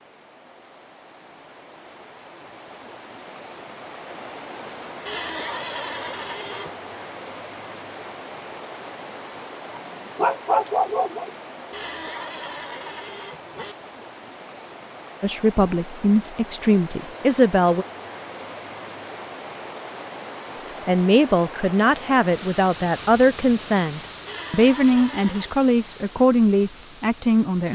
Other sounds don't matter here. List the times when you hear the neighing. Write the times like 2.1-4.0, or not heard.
5.0-6.7, 11.7-13.8, 24.2-25.6.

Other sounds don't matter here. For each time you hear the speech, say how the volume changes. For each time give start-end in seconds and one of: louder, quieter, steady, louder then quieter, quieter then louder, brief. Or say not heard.
15.2-17.9 brief
20.9-27.7 steady.